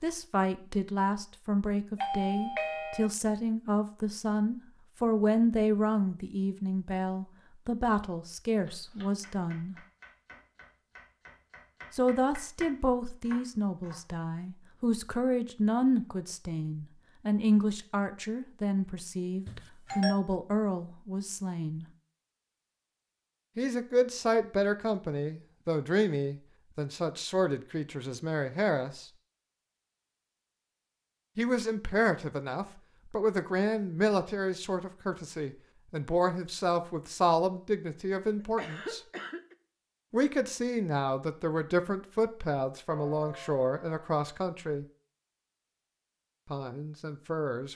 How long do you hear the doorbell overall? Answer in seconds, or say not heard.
3 s.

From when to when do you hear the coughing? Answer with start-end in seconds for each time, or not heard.
38.4-39.5.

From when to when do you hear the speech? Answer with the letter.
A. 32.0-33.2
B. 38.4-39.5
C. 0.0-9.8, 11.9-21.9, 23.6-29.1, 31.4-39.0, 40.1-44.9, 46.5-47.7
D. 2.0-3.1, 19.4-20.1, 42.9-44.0
C.